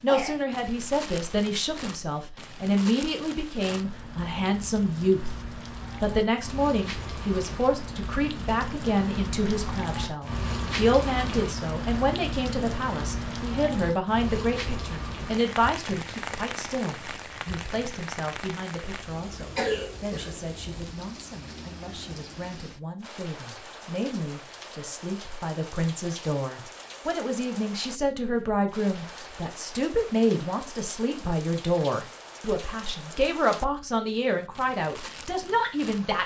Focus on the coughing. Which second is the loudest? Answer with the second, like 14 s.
20 s.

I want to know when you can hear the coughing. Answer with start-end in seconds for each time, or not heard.
0.1-0.5, 19.6-20.4.